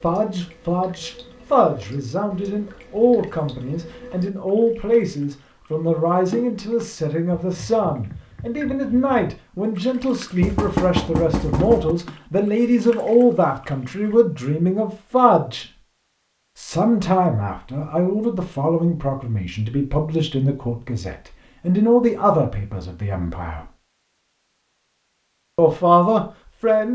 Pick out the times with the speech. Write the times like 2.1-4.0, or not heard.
0.0-15.7, 16.6-23.7, 25.6-26.8.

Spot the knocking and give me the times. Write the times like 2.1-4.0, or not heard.
10.4-11.9.